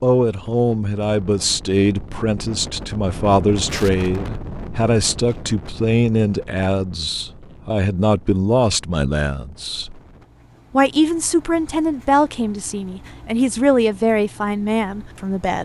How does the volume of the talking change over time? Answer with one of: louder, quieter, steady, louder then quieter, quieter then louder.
steady.